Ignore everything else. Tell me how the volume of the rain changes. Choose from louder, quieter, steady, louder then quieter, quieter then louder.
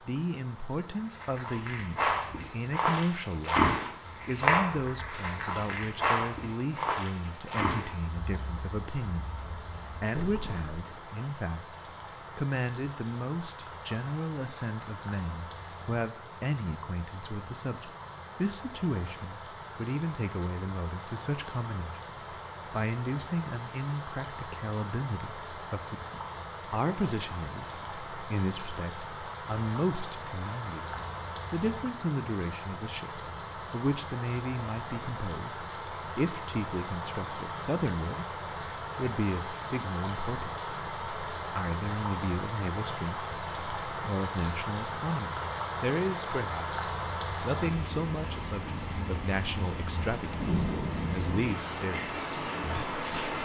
louder.